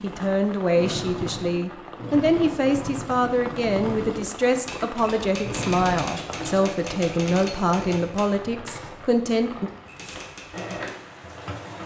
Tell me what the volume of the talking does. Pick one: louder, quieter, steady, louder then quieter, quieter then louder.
steady.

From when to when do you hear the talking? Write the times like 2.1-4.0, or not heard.
0.0-9.7.